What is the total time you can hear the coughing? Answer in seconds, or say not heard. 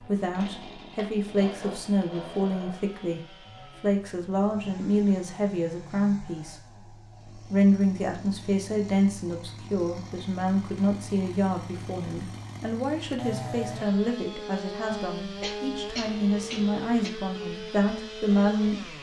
2 s.